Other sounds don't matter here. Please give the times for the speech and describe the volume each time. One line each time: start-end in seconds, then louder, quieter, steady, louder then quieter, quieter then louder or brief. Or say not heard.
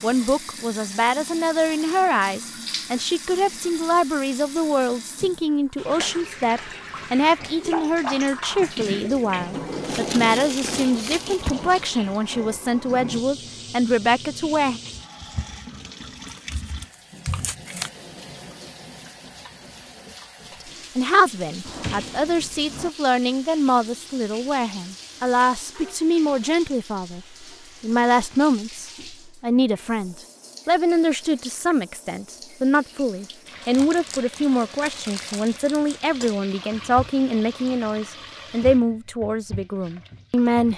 0.0-14.8 steady
20.6-40.7 steady.